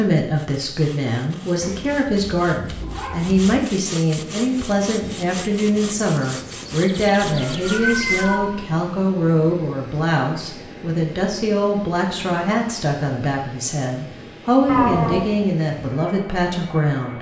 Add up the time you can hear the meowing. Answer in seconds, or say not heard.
4 s.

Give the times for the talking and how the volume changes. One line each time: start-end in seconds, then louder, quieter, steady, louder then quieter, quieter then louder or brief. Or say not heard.
0.0-17.1 steady.